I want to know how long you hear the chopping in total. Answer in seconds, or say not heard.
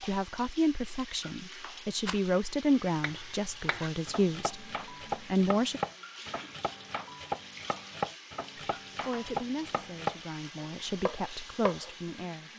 9 s.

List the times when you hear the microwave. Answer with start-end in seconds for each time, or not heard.
not heard.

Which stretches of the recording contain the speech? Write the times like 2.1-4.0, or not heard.
0.0-4.7, 5.2-5.8, 9.0-12.5.